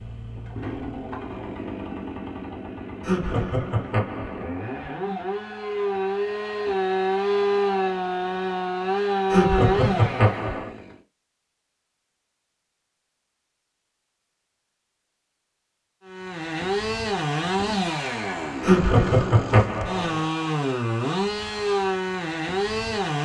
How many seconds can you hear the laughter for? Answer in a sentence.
The laughter can be heard for 5 seconds in total.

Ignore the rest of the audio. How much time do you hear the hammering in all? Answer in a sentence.
You can't hear the hammering here.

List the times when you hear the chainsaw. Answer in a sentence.
You can hear the chainsaw from 0.0 to 11.0 s and from 16.1 to 23.2 s.